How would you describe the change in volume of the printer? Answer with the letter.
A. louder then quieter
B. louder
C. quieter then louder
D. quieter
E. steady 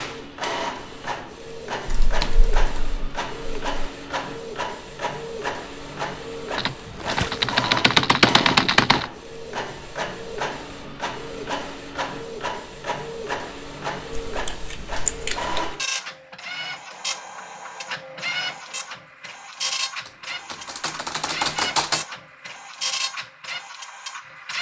E.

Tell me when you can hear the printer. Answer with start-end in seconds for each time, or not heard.
0.0-24.5.